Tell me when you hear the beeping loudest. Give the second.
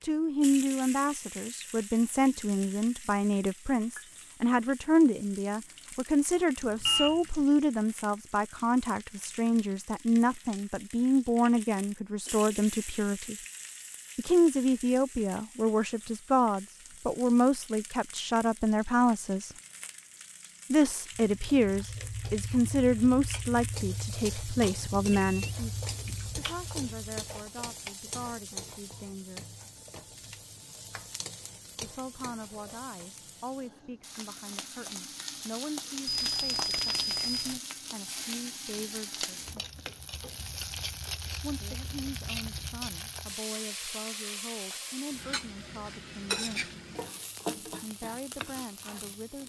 7 s.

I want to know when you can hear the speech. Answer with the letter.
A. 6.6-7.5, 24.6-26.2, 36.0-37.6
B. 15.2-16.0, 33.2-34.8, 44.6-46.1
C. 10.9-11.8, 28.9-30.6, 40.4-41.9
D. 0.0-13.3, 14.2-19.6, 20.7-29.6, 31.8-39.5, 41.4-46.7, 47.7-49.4
D.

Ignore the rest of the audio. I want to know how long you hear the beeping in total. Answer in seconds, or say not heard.
4 s.